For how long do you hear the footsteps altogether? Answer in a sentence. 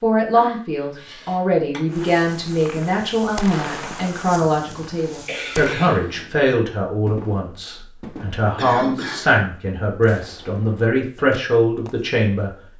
You can't hear the footsteps here.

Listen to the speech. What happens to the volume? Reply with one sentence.
The volume of the speech stays about the same.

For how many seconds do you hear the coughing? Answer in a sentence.
You can hear the coughing for 4 seconds altogether.